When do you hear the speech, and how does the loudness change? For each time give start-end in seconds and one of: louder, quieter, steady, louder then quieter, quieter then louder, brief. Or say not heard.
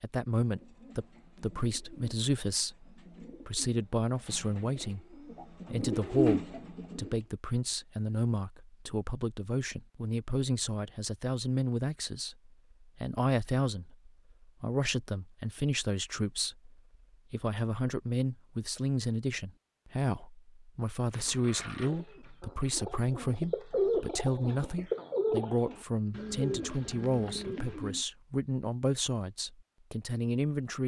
0.0-30.8 steady.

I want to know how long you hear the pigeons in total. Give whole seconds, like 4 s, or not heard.
14 s.